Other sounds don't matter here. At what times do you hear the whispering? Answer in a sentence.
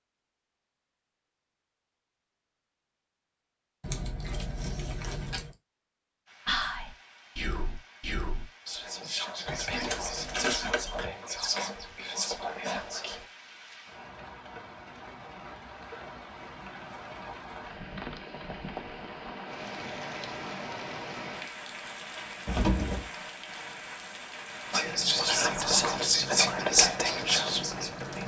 You can hear the whispering from 6.5 to 13.2 s and from 24.7 to 28.2 s.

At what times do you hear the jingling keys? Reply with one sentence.
You can hear the jingling keys from 3.8 to 5.5 s, from 9.4 to 11.1 s and from 22.4 to 23.1 s.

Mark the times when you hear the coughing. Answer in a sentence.
The coughing can't be heard in this clip.